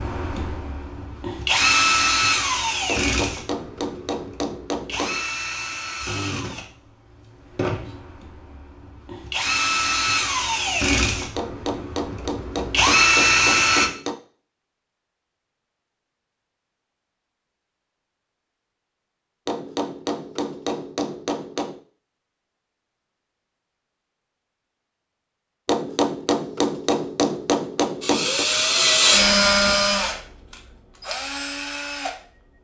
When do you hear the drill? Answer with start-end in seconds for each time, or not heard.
0.0-13.9, 28.0-32.5.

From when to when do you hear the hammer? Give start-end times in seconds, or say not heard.
2.9-5.2, 11.3-14.2, 19.4-21.8, 25.6-28.4.